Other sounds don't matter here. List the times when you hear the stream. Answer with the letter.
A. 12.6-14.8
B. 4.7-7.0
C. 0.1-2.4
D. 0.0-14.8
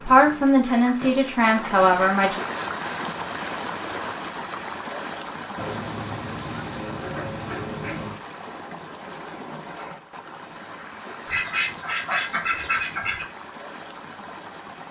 D.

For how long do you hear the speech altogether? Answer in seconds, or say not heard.
2 s.